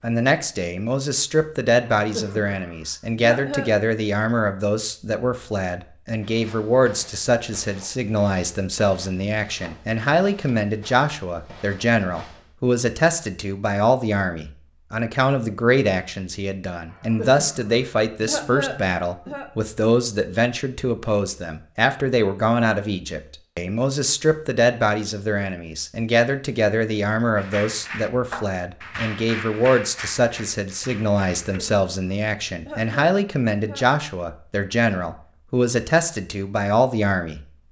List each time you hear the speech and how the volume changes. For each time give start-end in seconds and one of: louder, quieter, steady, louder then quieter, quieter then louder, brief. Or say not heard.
0.0-37.4 steady.